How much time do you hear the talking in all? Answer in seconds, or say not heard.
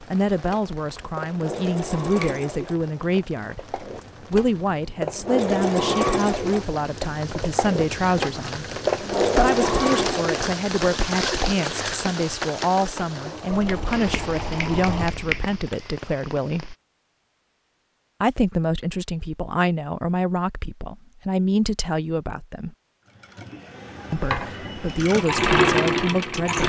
24 s.